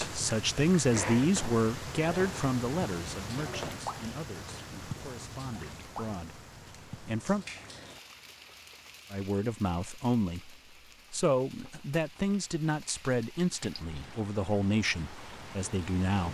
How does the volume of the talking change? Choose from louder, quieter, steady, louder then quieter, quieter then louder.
quieter then louder.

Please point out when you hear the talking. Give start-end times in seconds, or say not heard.
0.0-7.5, 9.1-16.2.